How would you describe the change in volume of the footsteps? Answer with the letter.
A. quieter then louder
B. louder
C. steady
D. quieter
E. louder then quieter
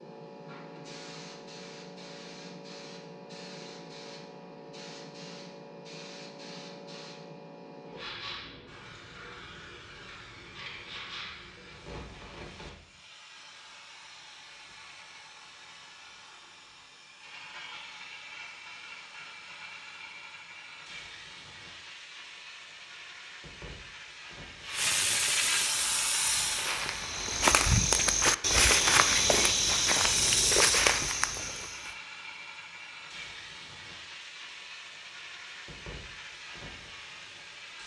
B.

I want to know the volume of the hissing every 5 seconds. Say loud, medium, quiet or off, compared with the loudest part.
quiet, quiet, quiet, quiet, medium, loud, quiet, quiet.